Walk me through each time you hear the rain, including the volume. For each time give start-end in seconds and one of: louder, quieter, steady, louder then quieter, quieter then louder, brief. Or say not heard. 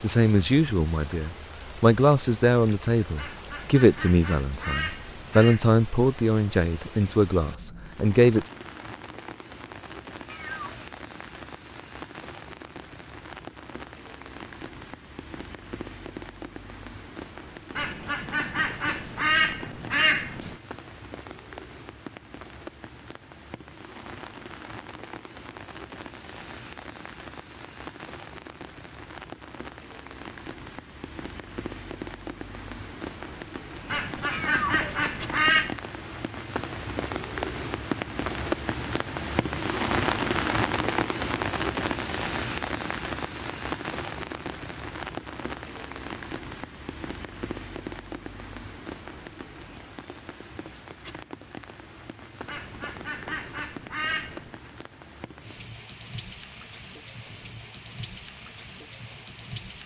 0.0-59.8 louder then quieter.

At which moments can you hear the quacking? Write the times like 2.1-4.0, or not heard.
3.1-5.7, 17.8-20.6, 33.9-35.8, 52.5-54.7.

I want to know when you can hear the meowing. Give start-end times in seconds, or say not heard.
10.2-10.8, 34.3-34.9.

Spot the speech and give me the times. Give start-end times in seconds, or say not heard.
0.0-8.5.